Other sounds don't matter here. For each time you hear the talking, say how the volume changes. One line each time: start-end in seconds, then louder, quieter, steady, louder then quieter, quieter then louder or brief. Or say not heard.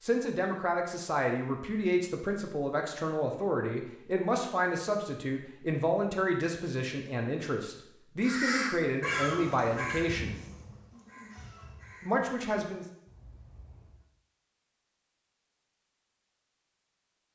0.0-10.4 steady
12.0-12.8 brief.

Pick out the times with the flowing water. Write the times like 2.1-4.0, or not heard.
not heard.